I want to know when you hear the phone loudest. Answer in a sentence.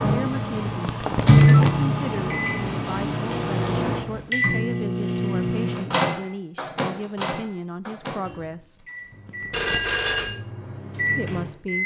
The volume of the phone peaks at 10 seconds.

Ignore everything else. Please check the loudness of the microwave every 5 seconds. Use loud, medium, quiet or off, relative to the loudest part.
loud, medium, medium.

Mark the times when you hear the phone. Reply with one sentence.
The phone can be heard from 1.0 to 1.7 s and from 9.5 to 10.4 s.